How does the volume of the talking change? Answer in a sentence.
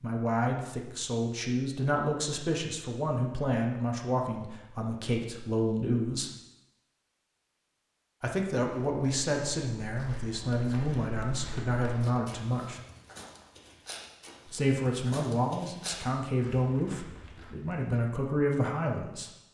The volume of the talking stays about the same.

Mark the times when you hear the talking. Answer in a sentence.
You can hear the talking from 0.0 to 6.3 s, from 8.2 to 12.8 s and from 14.5 to 19.3 s.